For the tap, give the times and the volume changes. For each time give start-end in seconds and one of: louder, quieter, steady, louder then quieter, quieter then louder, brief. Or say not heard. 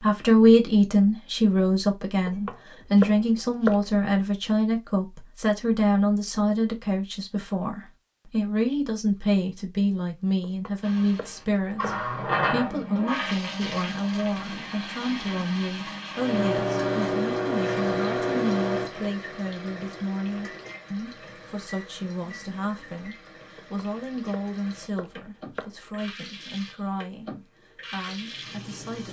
10.8-29.0 quieter then louder.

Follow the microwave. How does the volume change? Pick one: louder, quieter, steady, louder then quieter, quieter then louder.
quieter.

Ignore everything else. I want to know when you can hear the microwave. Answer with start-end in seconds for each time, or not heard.
16.1-23.2.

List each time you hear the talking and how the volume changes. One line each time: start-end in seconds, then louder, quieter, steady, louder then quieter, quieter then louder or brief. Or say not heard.
0.0-29.0 quieter.